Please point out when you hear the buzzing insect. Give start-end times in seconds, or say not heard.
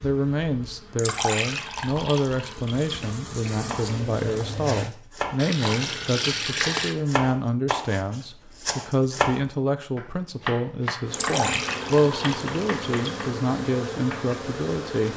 0.0-4.9, 11.1-15.1.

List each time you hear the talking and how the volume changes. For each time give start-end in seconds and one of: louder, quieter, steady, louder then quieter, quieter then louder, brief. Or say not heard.
0.0-15.1 steady.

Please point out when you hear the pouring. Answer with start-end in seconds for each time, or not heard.
0.9-3.1, 5.3-7.0, 11.1-13.3.